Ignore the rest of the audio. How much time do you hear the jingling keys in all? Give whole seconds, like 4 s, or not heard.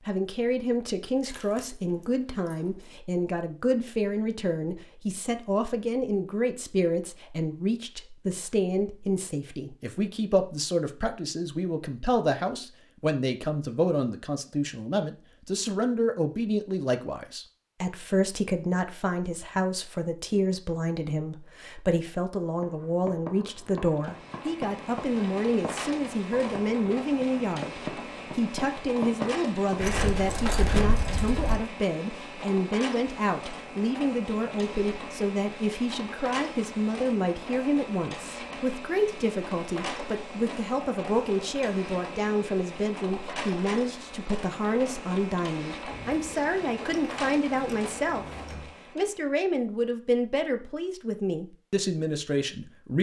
6 s.